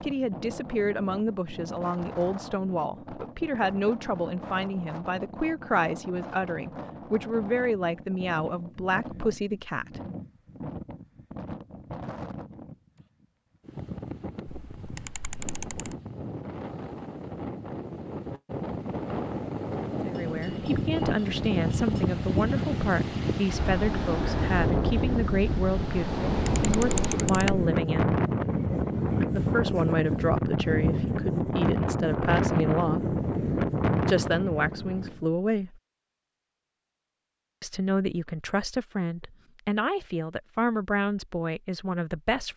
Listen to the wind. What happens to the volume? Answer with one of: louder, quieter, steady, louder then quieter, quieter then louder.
louder.